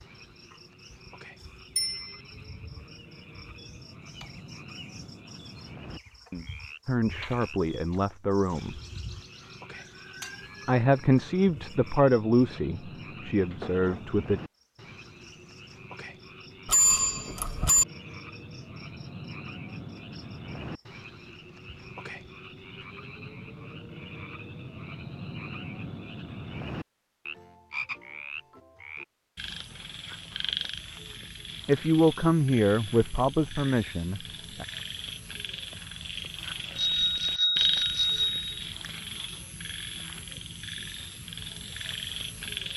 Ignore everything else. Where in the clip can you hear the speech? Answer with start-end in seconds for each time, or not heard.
6.8-8.8, 10.7-14.4, 31.6-34.6.